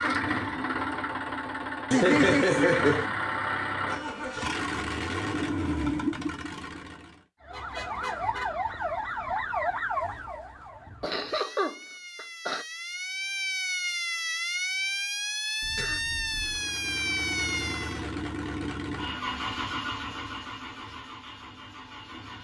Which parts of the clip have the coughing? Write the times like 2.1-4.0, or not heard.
1.9-3.1, 11.0-12.7, 15.6-16.6.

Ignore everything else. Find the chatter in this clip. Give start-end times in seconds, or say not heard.
not heard.